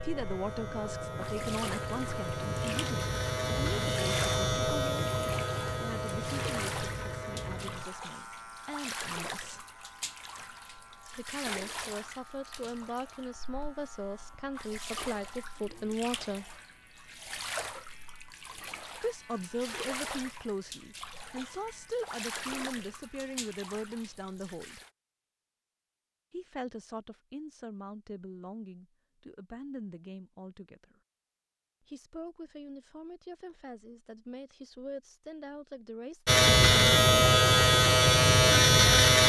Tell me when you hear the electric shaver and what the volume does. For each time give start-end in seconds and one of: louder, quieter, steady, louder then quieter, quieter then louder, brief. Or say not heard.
0.0-23.5 quieter
36.2-39.2 brief.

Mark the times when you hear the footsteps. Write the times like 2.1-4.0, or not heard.
not heard.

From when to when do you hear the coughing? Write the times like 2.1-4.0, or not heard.
not heard.